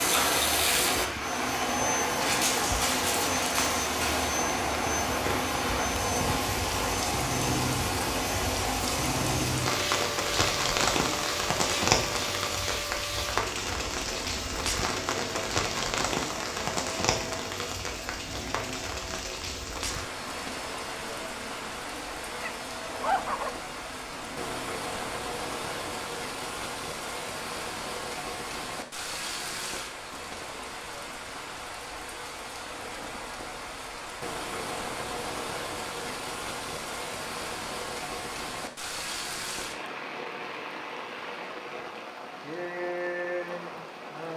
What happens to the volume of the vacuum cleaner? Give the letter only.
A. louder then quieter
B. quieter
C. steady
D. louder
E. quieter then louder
B.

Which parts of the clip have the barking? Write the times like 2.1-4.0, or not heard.
22.3-23.6.